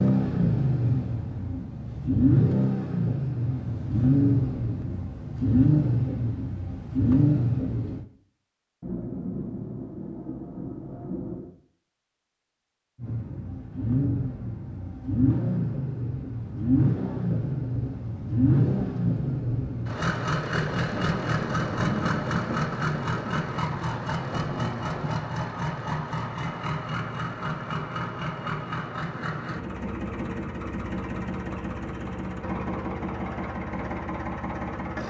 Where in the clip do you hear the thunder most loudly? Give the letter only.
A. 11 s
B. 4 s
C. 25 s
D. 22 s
D.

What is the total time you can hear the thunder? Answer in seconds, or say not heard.
7 s.